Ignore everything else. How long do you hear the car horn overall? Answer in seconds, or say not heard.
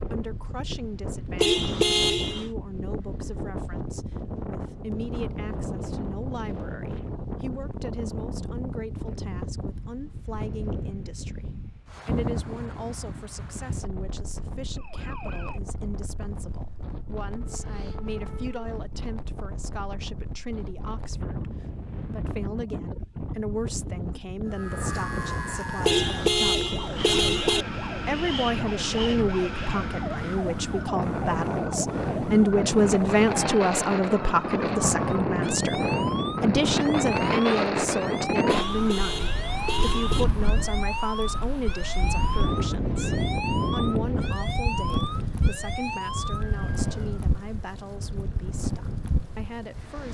5 s.